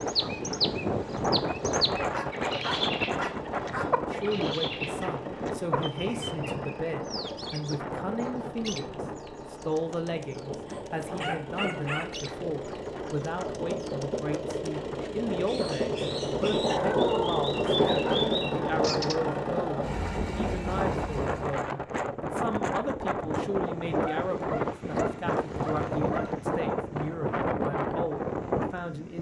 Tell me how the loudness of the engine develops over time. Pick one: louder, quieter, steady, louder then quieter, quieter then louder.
louder.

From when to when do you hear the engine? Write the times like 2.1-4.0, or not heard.
0.0-21.6.